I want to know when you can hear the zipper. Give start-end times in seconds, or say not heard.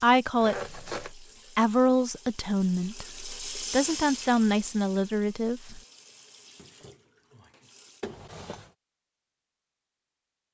0.4-1.1, 8.0-8.7.